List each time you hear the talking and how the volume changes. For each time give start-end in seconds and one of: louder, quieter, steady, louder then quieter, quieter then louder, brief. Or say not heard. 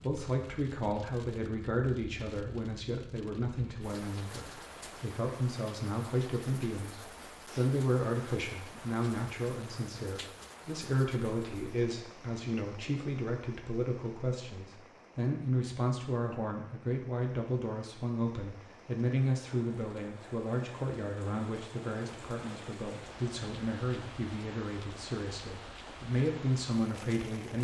0.0-27.5 steady.